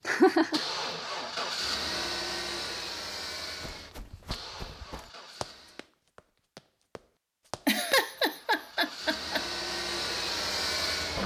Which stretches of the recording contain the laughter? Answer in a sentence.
You can hear the laughter from 0.1 to 0.7 s and from 7.7 to 9.4 s.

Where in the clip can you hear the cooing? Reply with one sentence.
You can't hear the cooing here.